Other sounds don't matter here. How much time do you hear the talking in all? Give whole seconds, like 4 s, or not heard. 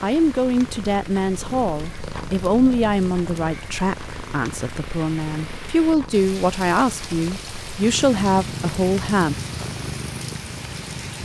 9 s.